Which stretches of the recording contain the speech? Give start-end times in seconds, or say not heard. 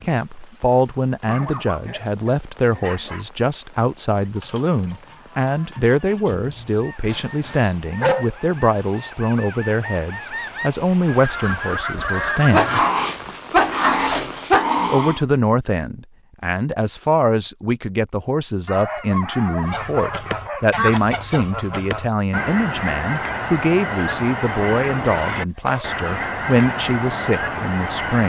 0.0-12.8, 14.8-28.2.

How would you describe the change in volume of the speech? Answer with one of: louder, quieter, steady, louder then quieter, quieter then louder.
steady.